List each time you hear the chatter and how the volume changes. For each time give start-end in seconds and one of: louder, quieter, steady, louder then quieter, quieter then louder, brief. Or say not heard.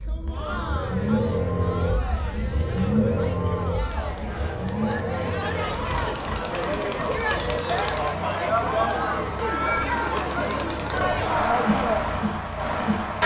0.1-13.2 louder.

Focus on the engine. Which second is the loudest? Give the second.
3 s.